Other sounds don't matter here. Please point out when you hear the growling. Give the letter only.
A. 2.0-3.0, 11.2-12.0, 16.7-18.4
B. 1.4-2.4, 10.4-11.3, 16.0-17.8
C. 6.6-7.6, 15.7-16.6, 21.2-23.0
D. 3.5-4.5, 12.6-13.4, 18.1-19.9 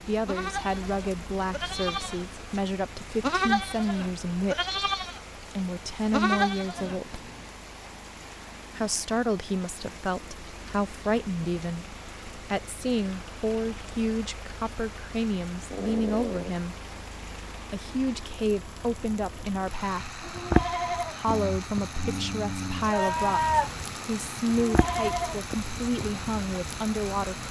C.